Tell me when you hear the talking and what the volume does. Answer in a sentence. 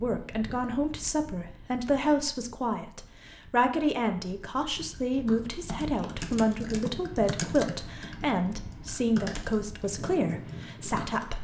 The talking can be heard from 0.0 to 11.3 s, at a steady volume.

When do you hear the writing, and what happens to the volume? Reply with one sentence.
The writing can't be heard in this clip.